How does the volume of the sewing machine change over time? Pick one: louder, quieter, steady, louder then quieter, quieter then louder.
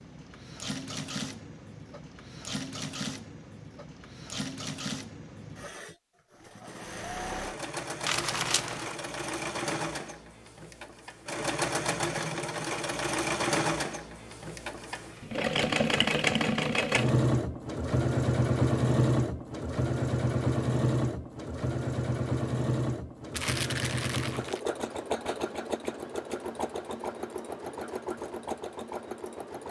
louder then quieter.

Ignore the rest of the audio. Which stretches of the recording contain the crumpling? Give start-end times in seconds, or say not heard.
8.1-8.9, 23.3-24.6.